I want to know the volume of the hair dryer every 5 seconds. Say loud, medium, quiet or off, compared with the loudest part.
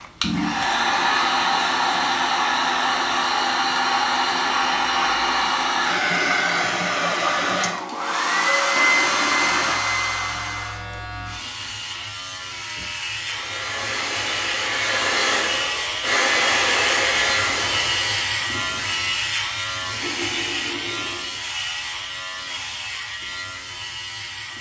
loud, loud, medium, loud, off.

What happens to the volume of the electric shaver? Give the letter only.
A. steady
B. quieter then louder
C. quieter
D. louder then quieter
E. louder
D.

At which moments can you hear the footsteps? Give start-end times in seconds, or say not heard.
not heard.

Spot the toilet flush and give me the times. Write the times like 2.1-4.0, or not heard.
0.2-2.1, 8.8-9.8, 20.0-21.4.